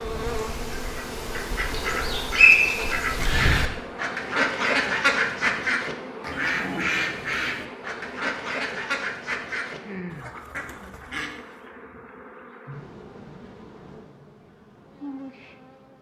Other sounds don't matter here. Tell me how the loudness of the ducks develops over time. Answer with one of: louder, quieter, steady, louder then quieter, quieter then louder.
louder then quieter.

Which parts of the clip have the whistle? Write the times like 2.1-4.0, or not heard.
2.4-3.0.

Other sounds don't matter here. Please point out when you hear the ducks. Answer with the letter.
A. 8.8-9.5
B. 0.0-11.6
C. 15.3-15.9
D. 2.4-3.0
B.